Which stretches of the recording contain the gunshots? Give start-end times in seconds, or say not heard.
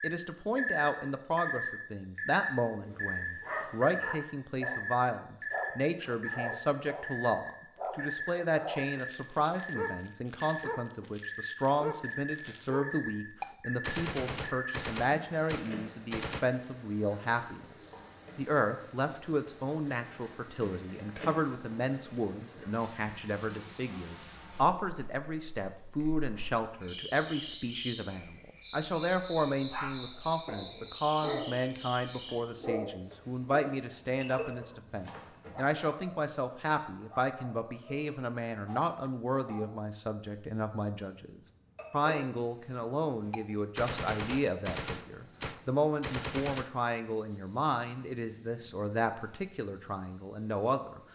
13.4-16.4, 43.3-46.6.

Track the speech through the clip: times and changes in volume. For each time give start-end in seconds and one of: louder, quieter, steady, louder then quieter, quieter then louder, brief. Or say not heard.
0.0-17.6 steady
18.4-51.0 steady.